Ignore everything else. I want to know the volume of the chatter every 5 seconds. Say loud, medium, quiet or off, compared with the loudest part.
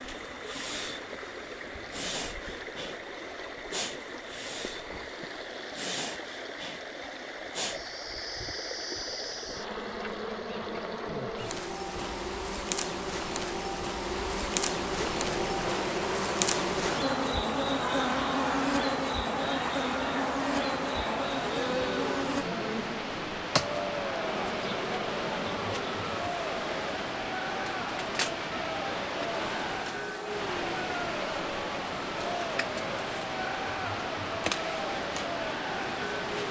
off, off, off, loud, loud, loud, loud, loud.